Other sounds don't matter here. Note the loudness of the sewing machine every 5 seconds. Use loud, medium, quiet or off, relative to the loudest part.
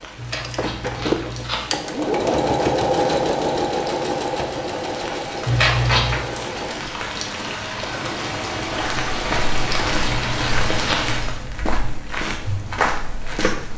loud, medium, off.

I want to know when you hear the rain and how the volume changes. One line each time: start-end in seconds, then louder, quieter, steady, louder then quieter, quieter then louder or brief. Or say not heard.
0.0-11.4 louder.